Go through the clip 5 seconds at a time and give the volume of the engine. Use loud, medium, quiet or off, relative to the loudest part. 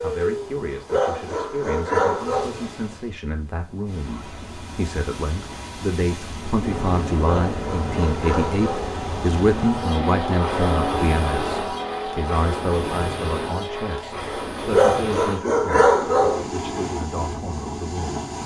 off, loud, loud, off.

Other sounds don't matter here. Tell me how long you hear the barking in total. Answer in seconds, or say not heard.
5 s.